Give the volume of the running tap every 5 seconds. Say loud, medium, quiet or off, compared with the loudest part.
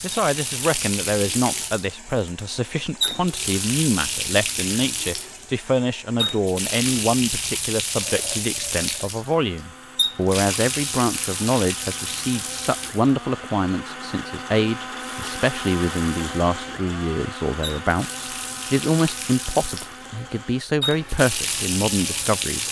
loud, loud, loud, medium, loud.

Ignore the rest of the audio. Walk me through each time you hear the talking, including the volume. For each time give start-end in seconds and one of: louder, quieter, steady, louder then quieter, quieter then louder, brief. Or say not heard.
0.0-22.6 steady.